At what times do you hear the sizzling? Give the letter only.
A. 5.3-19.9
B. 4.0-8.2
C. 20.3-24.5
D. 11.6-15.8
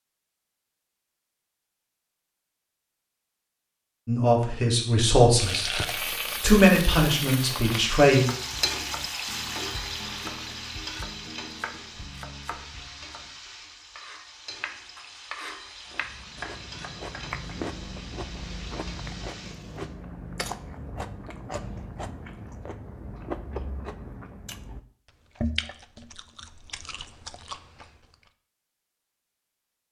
A.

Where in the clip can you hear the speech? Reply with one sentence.
The speech can be heard from 4.0 to 8.2 s.